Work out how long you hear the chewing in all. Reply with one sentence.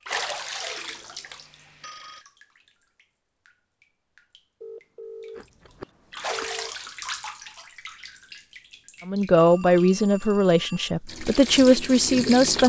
You can hear the chewing for 2 seconds altogether.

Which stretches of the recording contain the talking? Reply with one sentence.
The talking can be heard from 9.1 to 12.6 s.